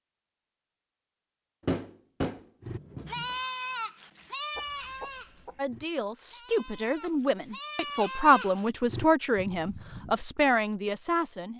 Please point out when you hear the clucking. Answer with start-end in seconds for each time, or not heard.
4.5-5.6.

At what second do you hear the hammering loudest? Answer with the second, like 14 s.
2 s.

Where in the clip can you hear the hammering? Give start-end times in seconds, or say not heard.
1.6-3.4.